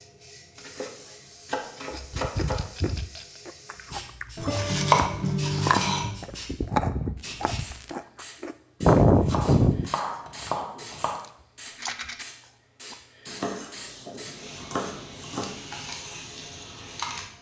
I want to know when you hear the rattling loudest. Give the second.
12 s.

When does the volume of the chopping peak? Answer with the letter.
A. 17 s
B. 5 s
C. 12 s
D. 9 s
B.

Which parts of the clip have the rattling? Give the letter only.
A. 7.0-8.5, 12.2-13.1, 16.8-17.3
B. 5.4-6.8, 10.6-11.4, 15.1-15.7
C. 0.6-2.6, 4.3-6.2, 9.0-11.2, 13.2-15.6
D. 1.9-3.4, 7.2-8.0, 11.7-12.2
D.